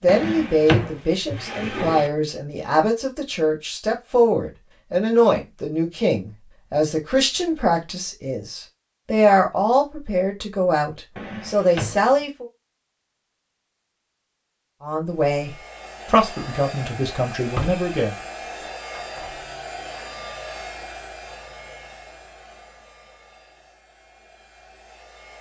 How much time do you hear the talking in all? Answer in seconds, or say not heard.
16 s.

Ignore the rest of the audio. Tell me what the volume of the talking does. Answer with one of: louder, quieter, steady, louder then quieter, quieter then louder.
steady.